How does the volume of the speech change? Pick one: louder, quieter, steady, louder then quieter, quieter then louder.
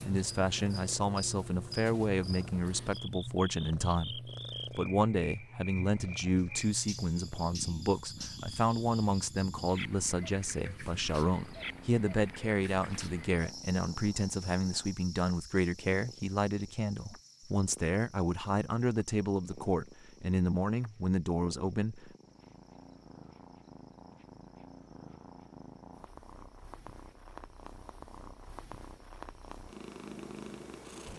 steady.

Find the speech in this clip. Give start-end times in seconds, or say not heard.
0.0-22.1.